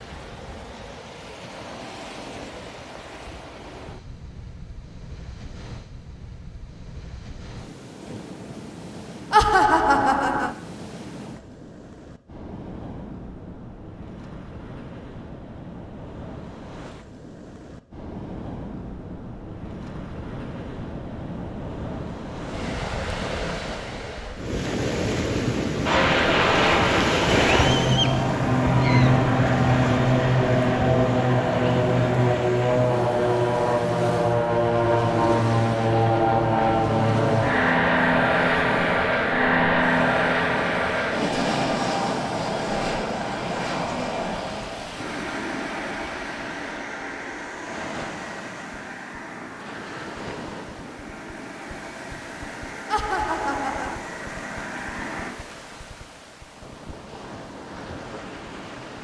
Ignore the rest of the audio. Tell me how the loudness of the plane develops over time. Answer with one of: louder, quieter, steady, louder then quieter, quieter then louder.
quieter.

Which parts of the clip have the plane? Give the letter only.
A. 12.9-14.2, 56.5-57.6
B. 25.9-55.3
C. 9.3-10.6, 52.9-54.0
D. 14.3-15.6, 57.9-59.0
B.